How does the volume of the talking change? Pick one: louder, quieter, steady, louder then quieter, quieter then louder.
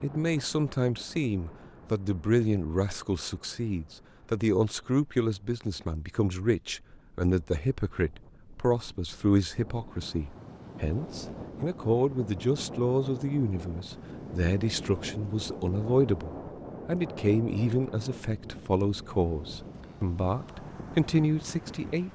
steady.